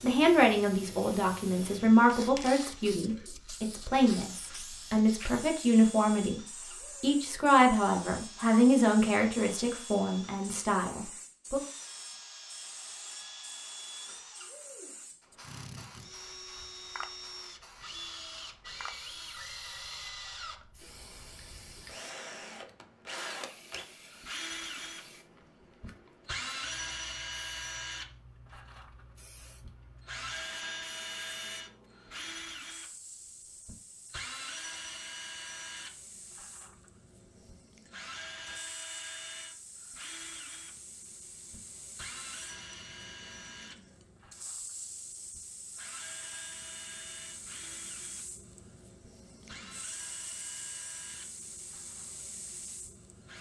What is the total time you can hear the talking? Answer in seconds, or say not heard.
11 s.